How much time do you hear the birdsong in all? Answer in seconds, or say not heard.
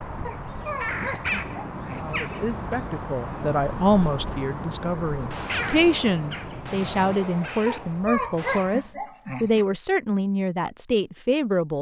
9 s.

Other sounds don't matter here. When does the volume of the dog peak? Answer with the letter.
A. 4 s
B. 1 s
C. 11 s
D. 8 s
D.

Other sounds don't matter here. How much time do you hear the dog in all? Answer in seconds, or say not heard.
4 s.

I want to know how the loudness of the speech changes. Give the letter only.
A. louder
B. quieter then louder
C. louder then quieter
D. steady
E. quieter
D.